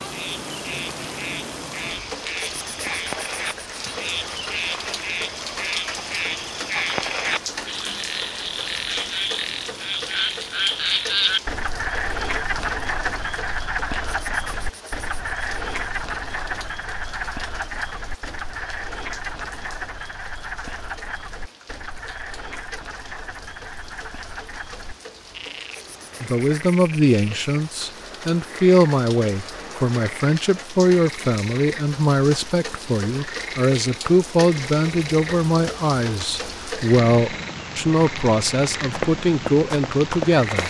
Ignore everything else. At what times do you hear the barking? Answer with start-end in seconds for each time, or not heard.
not heard.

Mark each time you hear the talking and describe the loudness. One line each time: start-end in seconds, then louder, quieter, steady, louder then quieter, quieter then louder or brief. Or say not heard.
26.2-40.6 steady.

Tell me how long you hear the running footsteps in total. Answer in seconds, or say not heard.
2 s.